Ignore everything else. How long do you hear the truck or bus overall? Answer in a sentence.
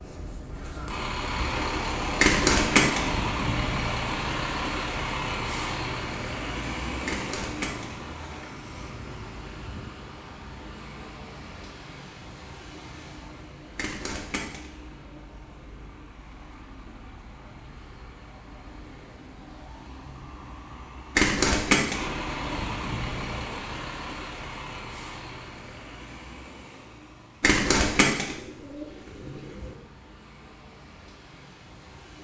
The truck or bus can be heard for 32 seconds in total.